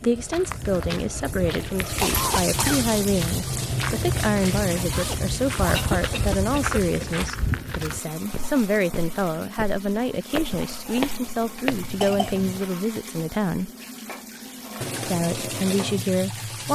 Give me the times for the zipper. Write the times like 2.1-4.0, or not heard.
4.9-5.9.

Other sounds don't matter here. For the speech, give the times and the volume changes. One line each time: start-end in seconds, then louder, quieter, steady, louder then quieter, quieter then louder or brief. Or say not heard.
0.0-13.7 steady
15.1-16.7 brief.